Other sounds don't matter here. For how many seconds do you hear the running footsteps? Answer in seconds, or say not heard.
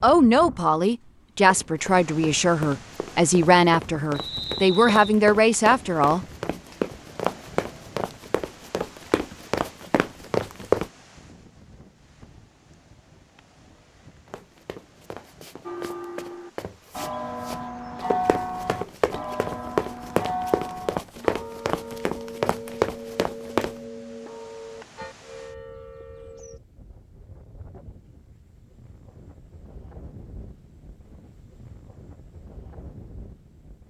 19 s.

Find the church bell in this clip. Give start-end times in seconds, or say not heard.
15.7-26.6.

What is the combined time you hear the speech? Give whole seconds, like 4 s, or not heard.
6 s.